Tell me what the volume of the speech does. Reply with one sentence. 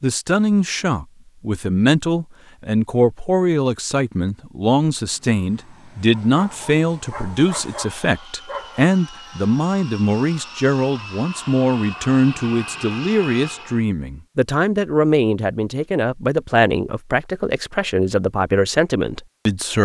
The volume of the speech stays about the same.